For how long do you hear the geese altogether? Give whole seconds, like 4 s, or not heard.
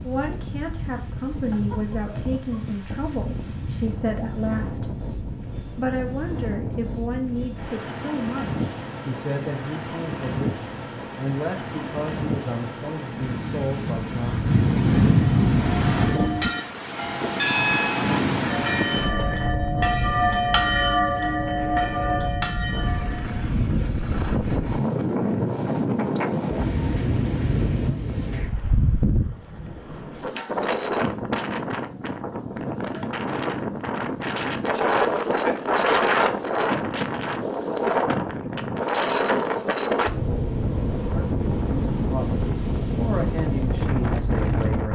not heard.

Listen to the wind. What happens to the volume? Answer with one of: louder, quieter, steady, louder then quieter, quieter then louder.
louder.